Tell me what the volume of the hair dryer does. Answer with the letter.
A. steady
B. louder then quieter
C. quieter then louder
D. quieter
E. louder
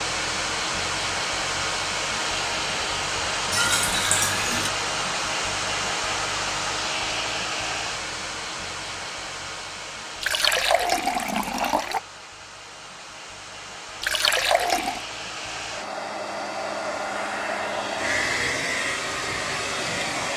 C.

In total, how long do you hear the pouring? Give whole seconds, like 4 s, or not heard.
4 s.